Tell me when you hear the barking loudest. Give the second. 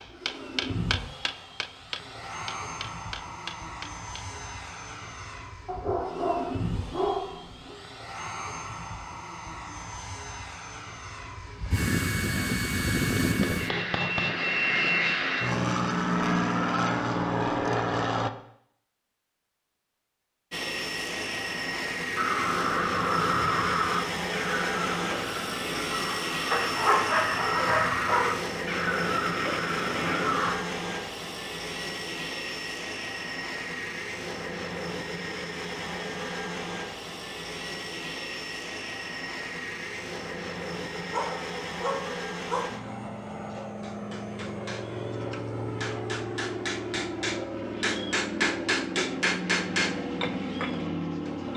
27 s.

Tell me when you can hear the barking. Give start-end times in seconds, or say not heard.
5.7-7.8, 26.5-28.4, 41.0-42.8.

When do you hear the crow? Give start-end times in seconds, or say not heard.
22.1-30.6.